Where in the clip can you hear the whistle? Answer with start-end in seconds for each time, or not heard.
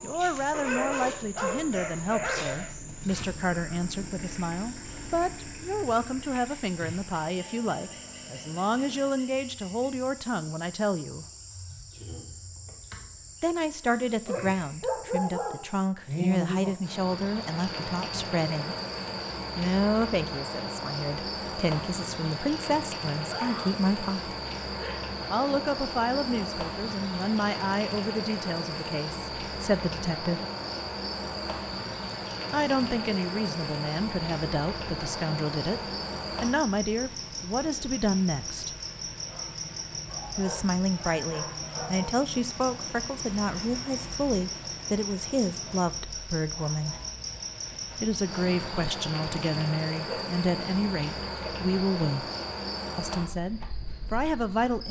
not heard.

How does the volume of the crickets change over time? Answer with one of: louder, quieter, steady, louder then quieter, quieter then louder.
louder.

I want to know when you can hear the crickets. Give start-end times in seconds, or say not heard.
0.0-54.8.